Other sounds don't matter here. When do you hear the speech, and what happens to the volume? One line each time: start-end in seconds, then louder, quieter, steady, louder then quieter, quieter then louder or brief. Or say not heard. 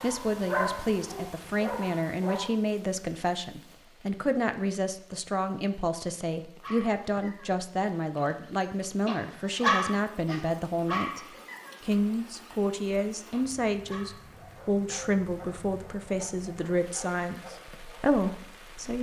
0.0-11.2 steady
11.8-18.9 steady.